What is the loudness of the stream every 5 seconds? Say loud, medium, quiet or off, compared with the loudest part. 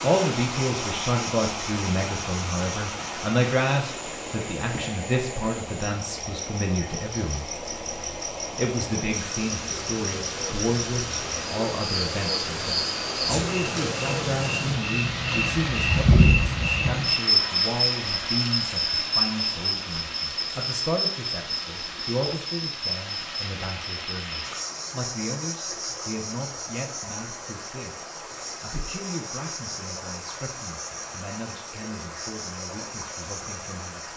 loud, medium, loud, loud, medium, medium, medium.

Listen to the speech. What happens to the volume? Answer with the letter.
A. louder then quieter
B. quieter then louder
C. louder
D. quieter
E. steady
D.